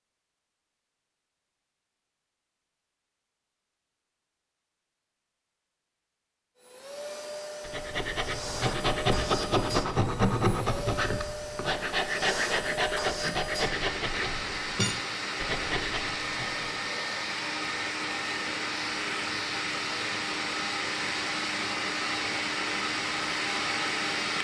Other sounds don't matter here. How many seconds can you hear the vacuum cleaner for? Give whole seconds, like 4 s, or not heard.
18 s.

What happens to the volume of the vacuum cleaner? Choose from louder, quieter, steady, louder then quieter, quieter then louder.
louder.